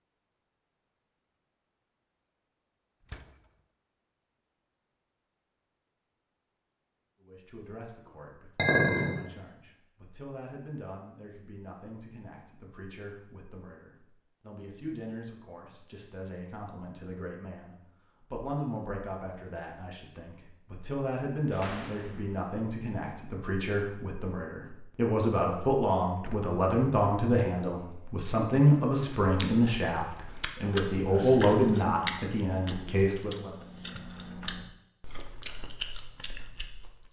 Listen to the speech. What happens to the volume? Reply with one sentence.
The volume of the speech goes up.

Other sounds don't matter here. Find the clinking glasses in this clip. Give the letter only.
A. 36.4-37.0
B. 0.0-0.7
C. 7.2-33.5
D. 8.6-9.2
D.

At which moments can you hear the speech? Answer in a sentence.
The speech can be heard from 7.2 to 33.5 s.